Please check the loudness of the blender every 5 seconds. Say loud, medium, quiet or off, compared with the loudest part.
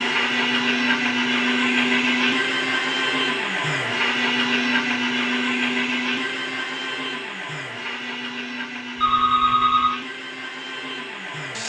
loud, medium, medium.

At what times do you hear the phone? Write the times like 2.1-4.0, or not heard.
8.9-9.9.